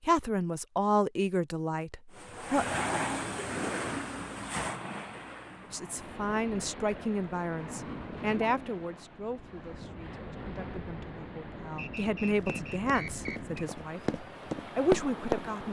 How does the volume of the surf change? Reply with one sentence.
The loudness of the surf goes down.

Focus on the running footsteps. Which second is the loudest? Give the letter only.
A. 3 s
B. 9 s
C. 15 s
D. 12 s
C.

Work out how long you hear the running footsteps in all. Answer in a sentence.
The running footsteps can be heard for 3 seconds in total.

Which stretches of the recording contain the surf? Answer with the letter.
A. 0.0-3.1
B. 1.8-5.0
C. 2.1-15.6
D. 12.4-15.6
C.